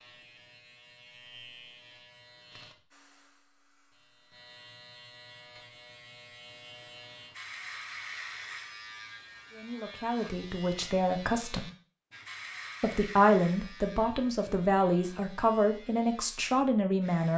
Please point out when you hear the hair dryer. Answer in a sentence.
You can hear the hair dryer from 2.9 to 4.5 s.